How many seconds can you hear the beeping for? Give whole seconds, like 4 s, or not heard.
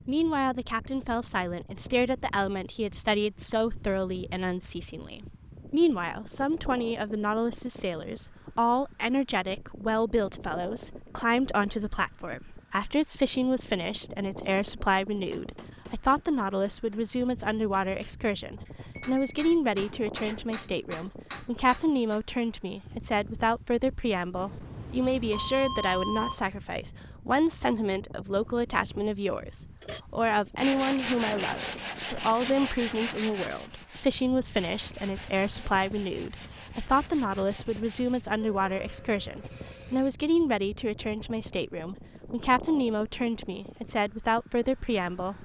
4 s.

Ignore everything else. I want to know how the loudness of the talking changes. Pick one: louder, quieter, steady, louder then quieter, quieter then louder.
steady.